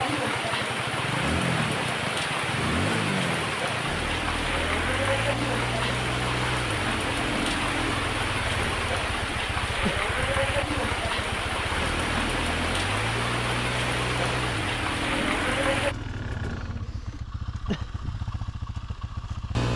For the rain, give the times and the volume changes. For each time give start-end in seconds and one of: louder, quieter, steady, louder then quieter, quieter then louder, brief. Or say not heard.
0.0-15.9 steady.